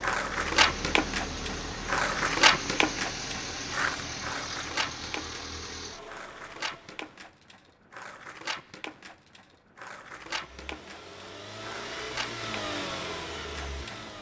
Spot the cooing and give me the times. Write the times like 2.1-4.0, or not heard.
not heard.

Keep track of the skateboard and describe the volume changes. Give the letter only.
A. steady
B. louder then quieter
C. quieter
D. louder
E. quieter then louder
C.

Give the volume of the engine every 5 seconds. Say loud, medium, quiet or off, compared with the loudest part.
loud, medium, loud.